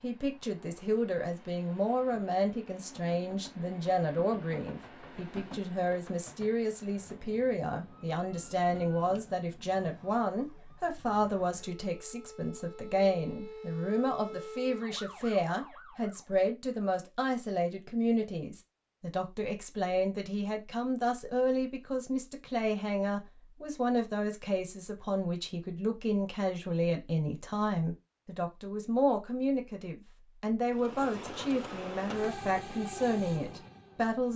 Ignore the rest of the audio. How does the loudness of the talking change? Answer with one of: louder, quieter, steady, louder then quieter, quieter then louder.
steady.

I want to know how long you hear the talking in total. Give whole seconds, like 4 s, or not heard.
34 s.